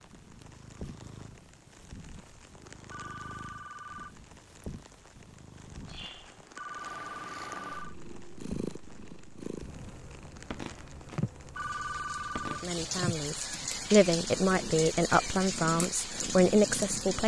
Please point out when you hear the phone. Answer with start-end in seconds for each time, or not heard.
2.9-4.2, 6.5-8.0, 11.6-12.7.